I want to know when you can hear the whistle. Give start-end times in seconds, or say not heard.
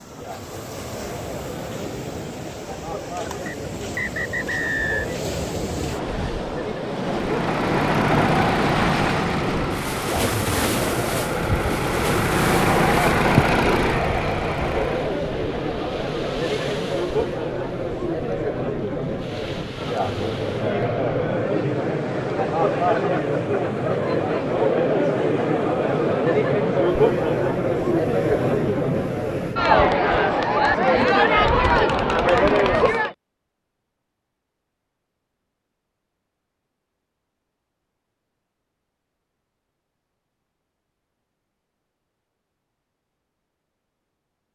3.5-5.0.